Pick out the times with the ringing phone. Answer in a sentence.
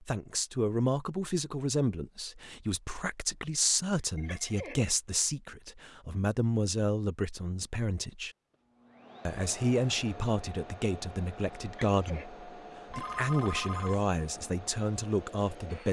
You can hear the ringing phone from 4.0 to 4.8 s and from 12.9 to 14.1 s.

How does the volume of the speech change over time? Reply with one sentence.
The loudness of the speech stays about the same.